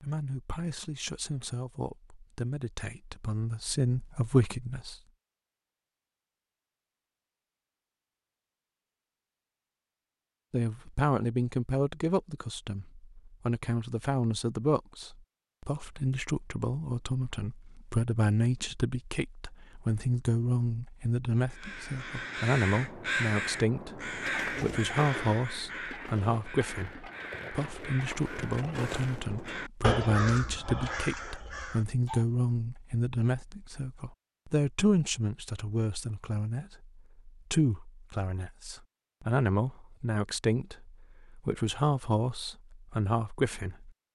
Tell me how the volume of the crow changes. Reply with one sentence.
The loudness of the crow goes down, then up.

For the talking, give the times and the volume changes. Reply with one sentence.
The talking can be heard from 0.0 to 5.0 s, getting louder; and from 10.5 to 43.9 s, at a steady volume.